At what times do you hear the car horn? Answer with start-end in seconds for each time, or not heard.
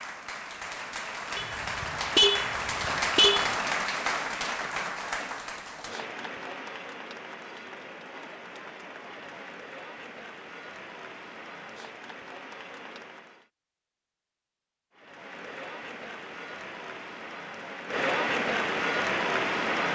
1.4-3.5.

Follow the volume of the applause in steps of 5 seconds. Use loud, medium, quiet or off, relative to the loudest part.
loud, medium, quiet, loud.